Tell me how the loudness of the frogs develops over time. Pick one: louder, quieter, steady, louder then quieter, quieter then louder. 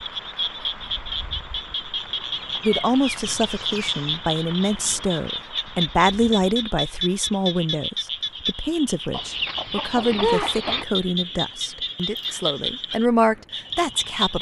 steady.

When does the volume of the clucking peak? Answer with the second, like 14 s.
10 s.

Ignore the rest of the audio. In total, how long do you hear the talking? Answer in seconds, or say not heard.
12 s.